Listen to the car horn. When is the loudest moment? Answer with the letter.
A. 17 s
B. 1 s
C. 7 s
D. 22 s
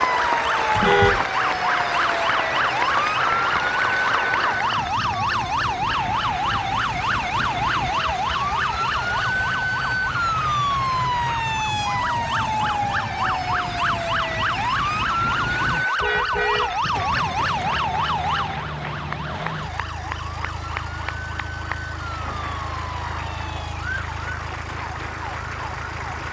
B.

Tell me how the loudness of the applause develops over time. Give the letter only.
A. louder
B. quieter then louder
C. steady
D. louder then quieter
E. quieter
E.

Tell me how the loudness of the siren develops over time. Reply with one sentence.
The volume of the siren goes down.